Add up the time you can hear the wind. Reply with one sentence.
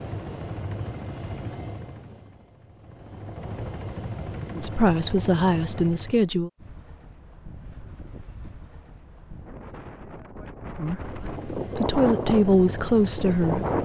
You can hear the wind for 7 seconds altogether.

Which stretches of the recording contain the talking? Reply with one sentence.
The talking can be heard from 4.5 to 6.5 s and from 10.8 to 13.7 s.